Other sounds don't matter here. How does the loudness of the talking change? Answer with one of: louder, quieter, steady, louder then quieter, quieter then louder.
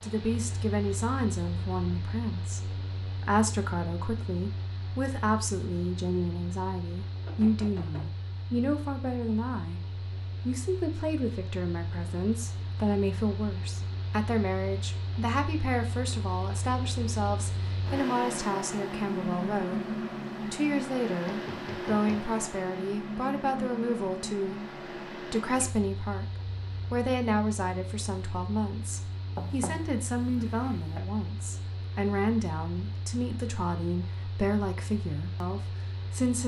steady.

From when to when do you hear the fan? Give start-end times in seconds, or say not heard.
0.0-36.4.